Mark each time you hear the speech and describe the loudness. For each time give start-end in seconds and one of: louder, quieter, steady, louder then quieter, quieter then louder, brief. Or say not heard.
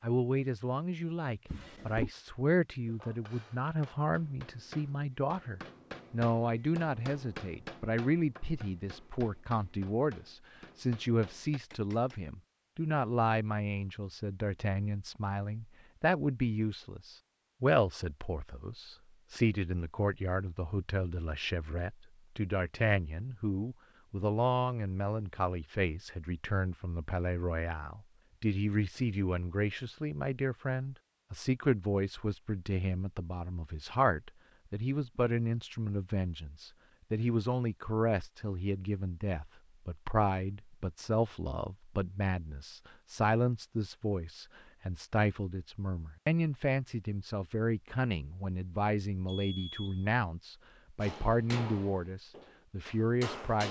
0.0-53.6 steady.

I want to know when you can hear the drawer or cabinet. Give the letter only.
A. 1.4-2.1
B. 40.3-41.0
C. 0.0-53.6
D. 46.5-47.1
A.